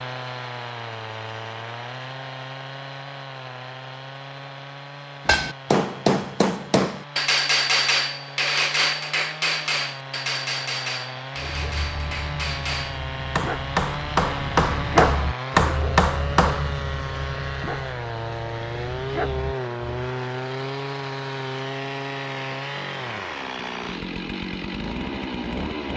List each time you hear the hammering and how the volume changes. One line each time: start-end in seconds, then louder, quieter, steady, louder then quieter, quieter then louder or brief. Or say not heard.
5.2-16.7 quieter then louder.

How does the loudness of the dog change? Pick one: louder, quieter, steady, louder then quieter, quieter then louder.
louder then quieter.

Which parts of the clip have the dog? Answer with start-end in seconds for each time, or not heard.
11.3-19.9.